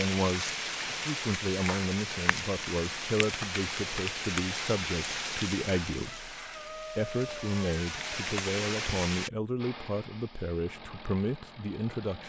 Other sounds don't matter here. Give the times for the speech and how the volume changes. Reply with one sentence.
You can hear the speech from 0.0 to 12.2 s, at a steady volume.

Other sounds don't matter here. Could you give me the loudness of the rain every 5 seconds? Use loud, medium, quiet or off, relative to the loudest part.
loud, loud, off.